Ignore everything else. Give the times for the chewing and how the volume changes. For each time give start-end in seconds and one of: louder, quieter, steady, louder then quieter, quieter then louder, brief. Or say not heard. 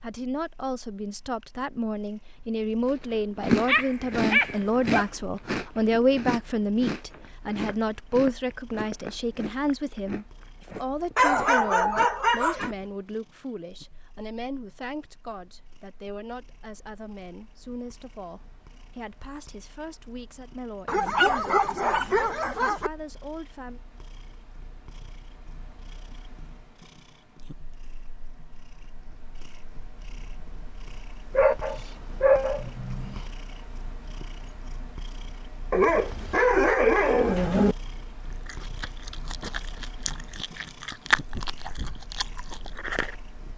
2.9-12.8 quieter
38.3-43.1 louder then quieter.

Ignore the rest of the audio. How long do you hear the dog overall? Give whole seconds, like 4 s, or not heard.
9 s.